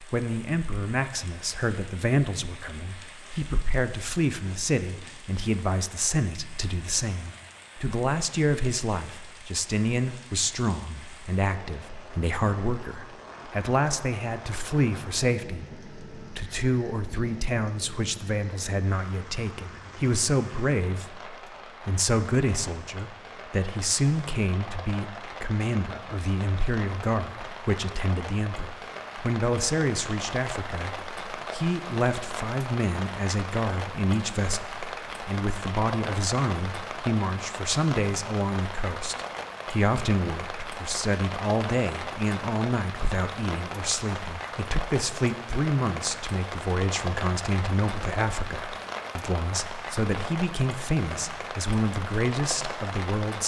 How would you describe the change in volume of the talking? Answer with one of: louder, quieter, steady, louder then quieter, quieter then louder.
steady.